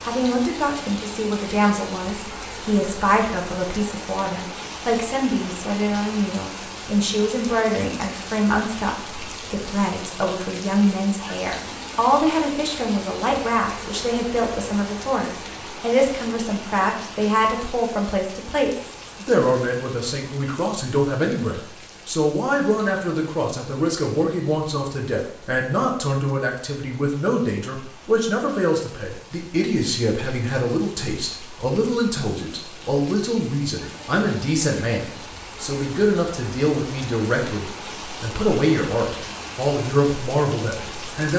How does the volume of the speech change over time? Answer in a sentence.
The volume of the speech stays about the same.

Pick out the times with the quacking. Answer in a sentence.
The quacking can't be heard in this clip.